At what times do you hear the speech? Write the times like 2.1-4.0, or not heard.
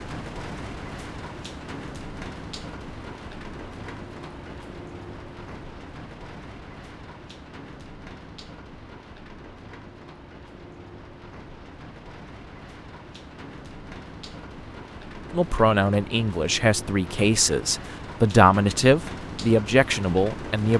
15.3-20.7.